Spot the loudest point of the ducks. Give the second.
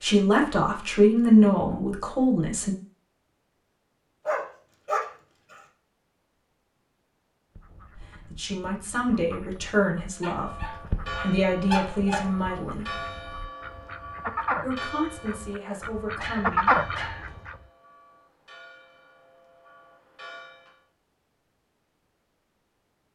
17 s.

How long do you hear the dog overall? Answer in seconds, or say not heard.
5 s.